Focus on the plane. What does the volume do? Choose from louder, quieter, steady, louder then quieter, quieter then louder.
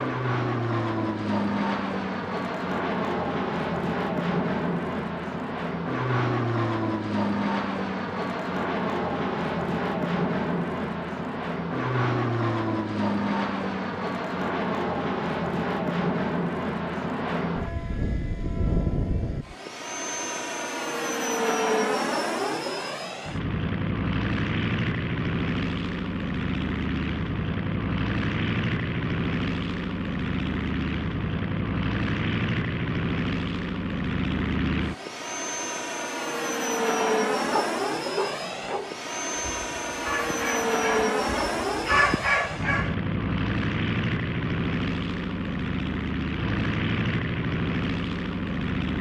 steady.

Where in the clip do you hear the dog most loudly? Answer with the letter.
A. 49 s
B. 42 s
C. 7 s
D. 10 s
B.